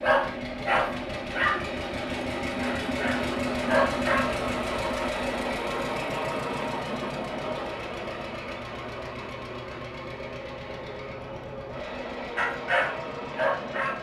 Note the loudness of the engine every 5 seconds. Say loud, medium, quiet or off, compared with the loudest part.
loud, loud, medium.